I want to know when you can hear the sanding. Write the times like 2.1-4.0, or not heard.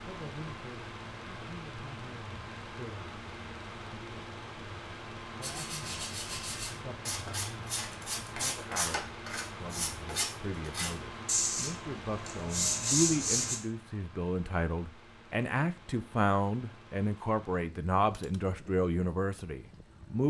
5.4-13.6.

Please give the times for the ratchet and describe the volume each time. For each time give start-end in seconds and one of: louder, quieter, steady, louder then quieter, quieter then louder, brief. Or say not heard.
not heard.